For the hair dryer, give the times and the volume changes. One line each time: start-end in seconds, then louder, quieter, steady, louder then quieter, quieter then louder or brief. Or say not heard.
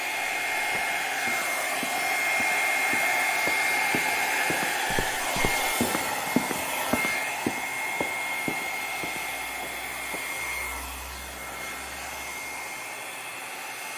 0.0-13.9 quieter.